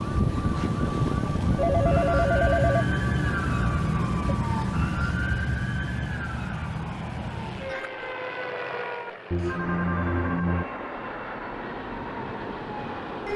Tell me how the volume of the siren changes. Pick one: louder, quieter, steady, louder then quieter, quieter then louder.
quieter.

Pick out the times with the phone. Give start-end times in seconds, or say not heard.
1.6-4.3, 9.3-10.7.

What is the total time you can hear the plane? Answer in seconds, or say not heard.
13 s.